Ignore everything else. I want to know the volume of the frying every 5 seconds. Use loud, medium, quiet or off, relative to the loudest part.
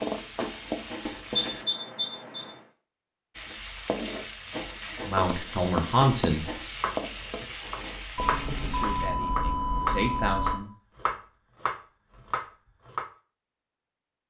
loud, loud, off.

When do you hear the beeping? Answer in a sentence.
You can hear the beeping from 1.3 to 2.5 s and from 8.2 to 10.6 s.